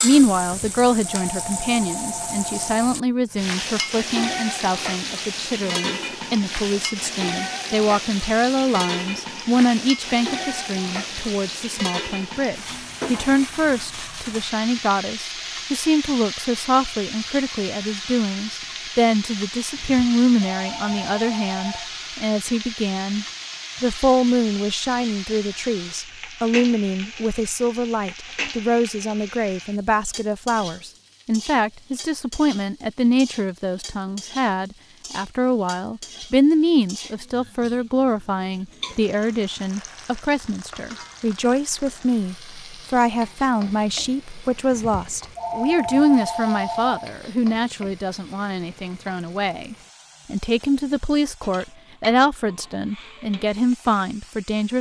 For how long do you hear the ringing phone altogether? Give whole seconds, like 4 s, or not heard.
7 s.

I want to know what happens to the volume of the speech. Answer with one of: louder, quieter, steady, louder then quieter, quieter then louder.
steady.